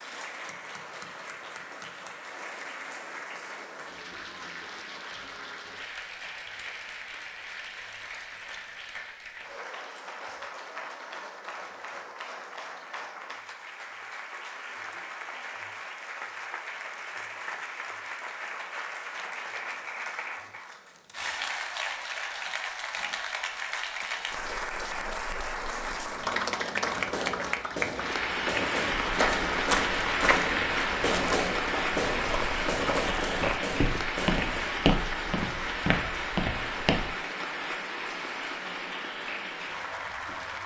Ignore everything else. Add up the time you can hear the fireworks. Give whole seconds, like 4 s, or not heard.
8 s.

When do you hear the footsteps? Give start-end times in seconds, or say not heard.
28.9-37.1.